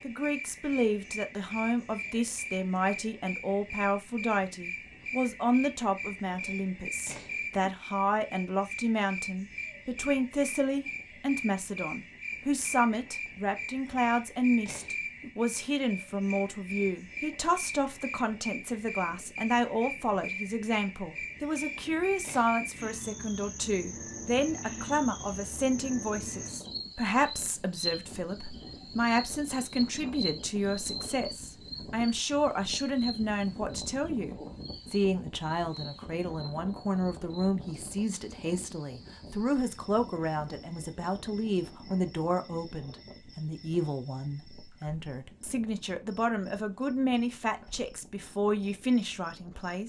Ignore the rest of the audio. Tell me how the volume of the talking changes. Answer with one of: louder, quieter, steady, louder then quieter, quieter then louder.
steady.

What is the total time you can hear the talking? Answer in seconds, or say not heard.
50 s.